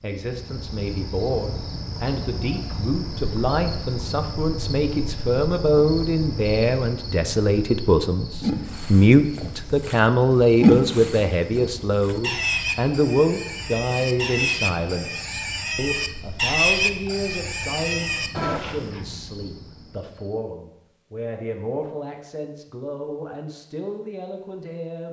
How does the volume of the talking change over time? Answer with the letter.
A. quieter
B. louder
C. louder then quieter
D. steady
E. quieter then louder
C.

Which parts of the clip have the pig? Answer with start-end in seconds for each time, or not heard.
8.4-19.0.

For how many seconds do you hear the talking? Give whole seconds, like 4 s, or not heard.
25 s.